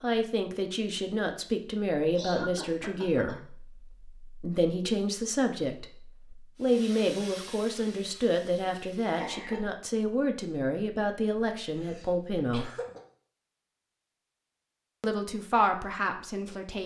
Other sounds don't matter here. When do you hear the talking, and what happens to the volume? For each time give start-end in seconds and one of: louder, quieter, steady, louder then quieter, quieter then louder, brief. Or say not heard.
0.0-12.7 steady
15.0-16.8 brief.